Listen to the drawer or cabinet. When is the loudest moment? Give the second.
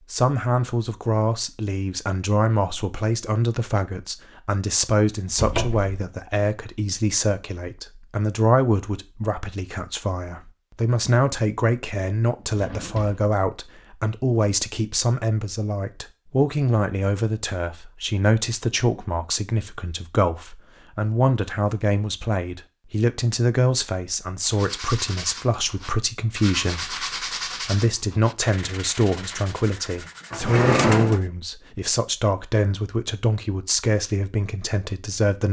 31 s.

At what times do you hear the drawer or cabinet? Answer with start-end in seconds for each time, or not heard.
5.3-6.0, 12.4-13.2, 30.3-31.2.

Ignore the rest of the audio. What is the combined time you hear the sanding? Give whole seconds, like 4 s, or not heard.
7 s.